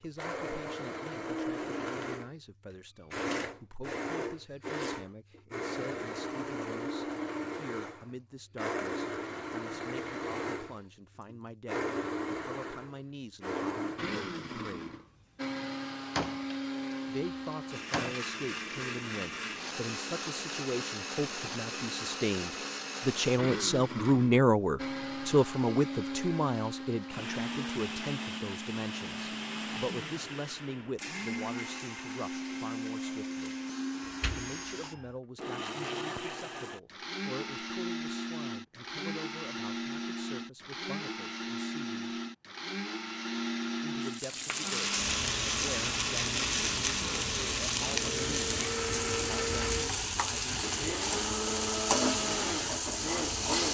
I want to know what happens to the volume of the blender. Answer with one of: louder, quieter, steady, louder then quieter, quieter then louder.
steady.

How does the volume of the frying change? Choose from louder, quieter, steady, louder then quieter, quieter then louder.
steady.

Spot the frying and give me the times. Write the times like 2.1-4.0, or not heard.
44.0-53.6.